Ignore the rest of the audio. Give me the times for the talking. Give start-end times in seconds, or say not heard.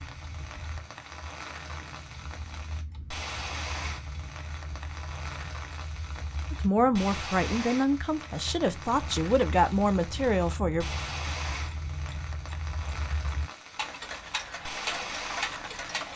6.5-10.8.